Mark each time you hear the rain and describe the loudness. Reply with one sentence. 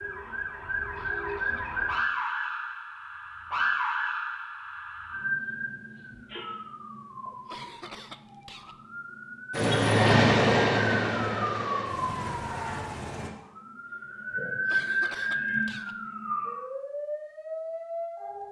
The rain can't be heard in this clip.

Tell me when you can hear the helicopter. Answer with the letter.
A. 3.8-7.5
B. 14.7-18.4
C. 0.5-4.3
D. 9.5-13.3
D.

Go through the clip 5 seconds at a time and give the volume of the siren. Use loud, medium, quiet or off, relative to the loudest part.
loud, medium, loud, loud.